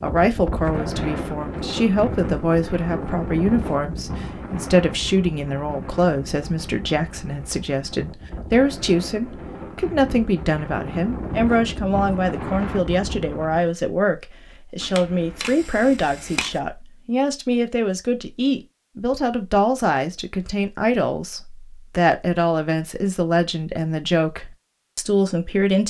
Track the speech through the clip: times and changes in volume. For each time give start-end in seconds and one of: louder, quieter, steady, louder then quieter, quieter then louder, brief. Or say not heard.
0.0-25.8 steady.